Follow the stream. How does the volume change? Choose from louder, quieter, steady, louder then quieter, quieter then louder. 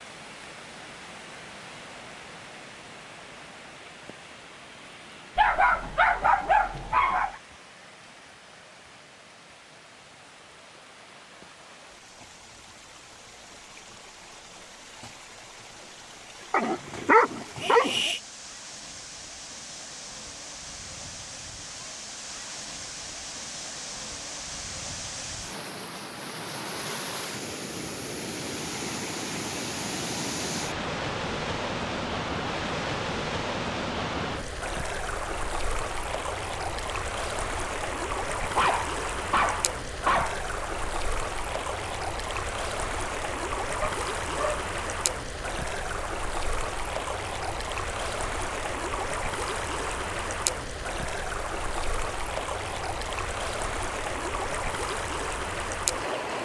louder.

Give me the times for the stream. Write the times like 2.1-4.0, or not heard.
0.0-56.4.